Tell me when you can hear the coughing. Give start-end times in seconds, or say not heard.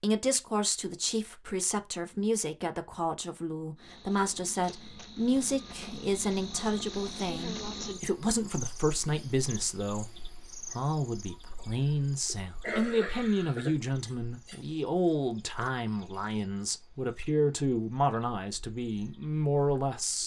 11.8-13.8.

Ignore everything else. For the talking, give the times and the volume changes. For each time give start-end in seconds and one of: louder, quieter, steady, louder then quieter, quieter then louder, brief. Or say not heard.
0.0-20.2 steady.